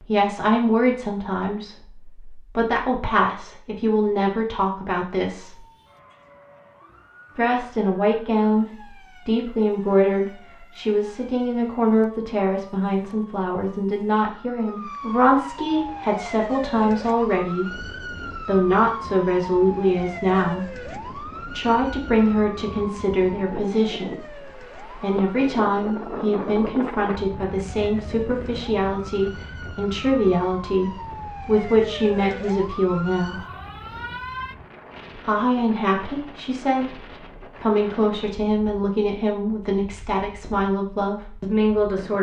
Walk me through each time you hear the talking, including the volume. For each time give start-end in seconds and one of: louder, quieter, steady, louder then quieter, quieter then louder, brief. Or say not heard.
0.0-5.6 quieter then louder
7.3-33.5 steady
35.1-42.1 steady.